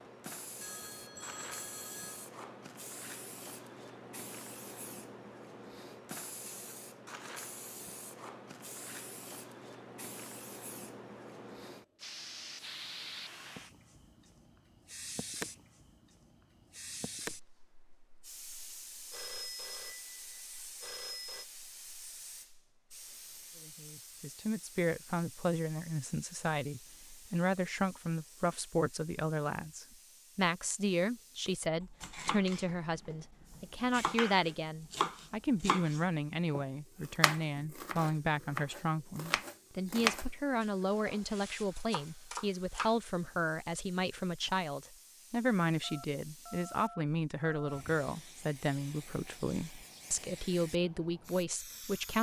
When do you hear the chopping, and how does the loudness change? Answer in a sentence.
You can hear the chopping from 31.8 to 42.9 s, getting louder then quieter.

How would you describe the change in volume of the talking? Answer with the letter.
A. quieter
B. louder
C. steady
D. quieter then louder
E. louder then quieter
C.